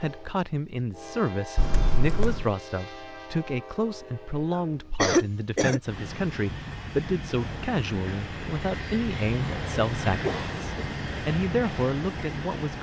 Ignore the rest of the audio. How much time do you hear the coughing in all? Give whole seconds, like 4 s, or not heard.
3 s.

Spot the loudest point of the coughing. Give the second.
5 s.